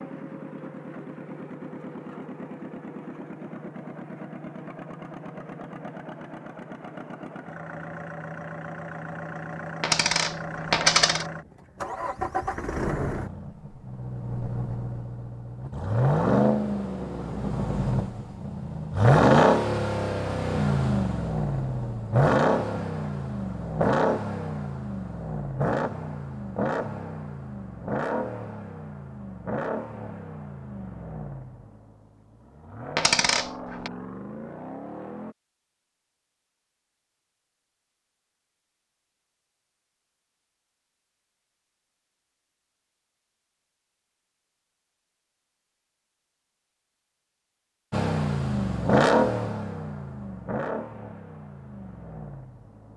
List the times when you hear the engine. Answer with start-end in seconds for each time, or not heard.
0.0-35.4, 47.9-52.9.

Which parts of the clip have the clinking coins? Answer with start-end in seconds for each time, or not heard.
9.8-11.2, 33.0-33.9.